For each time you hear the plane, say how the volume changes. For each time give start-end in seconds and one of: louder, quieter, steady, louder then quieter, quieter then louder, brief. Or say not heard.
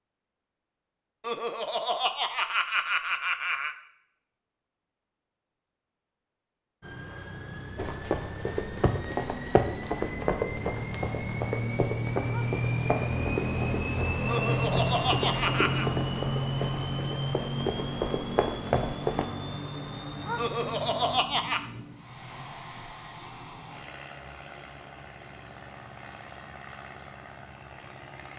6.8-28.3 louder then quieter.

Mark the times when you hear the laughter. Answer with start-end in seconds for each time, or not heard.
1.2-3.8, 14.2-15.8, 20.4-21.6.